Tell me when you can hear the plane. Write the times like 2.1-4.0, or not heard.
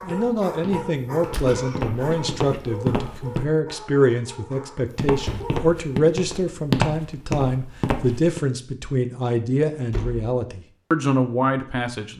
not heard.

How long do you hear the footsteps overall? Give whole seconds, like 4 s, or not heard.
7 s.